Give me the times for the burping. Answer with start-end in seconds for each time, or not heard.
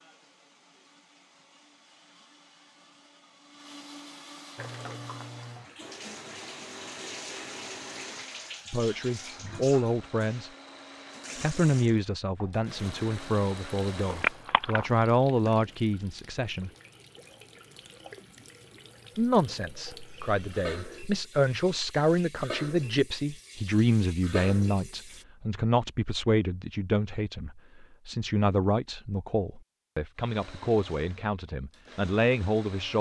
not heard.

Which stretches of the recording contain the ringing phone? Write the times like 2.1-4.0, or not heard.
14.1-14.9.